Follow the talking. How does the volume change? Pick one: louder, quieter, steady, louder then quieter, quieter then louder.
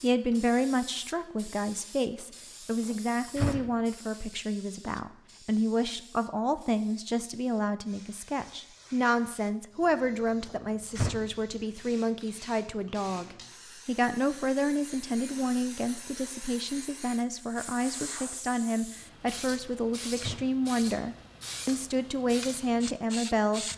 steady.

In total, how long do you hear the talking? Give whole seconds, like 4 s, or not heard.
24 s.